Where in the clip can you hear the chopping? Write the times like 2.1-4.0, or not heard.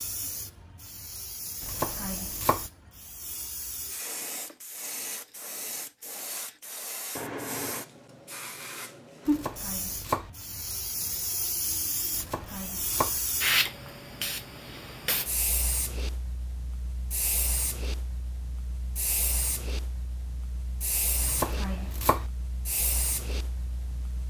1.6-2.7, 9.2-10.3, 12.1-13.2, 21.2-22.3.